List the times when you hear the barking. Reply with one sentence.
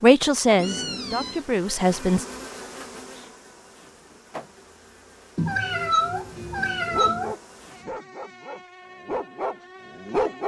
The barking can be heard from 6.8 to 10.4 s.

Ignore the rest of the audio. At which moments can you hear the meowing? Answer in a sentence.
The meowing can be heard from 0.6 to 1.4 s and from 5.3 to 7.3 s.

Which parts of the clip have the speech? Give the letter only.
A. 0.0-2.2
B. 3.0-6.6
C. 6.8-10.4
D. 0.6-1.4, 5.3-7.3
A.